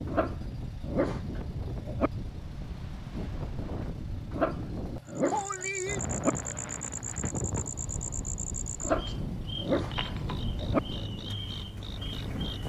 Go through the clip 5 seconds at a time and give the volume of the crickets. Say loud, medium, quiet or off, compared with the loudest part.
off, loud, loud.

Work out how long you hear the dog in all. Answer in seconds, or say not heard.
6 s.